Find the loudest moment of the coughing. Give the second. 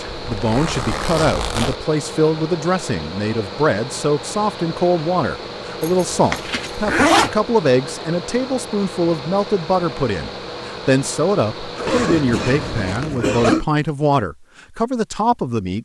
13 s.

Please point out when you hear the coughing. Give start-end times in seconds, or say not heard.
11.8-13.7.